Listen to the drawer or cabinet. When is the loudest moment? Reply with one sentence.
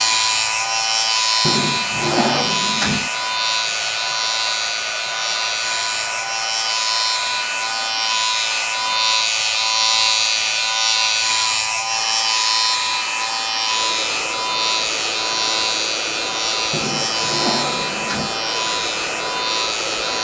The loudest moment of the drawer or cabinet is at 2 seconds.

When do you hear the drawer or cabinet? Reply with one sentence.
The drawer or cabinet can be heard from 1.4 to 3.1 s and from 16.7 to 18.4 s.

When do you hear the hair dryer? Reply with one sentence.
The hair dryer can be heard from 0.0 to 20.1 s.